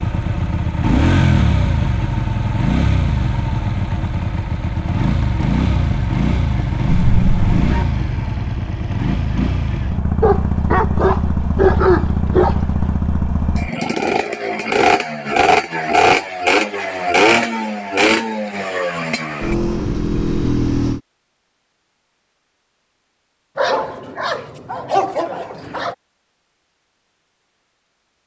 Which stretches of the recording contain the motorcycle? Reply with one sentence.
The motorcycle can be heard from 0.0 to 21.0 s.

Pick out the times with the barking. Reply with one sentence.
The barking can be heard from 6.8 to 7.8 s, from 10.2 to 12.9 s and from 23.6 to 25.9 s.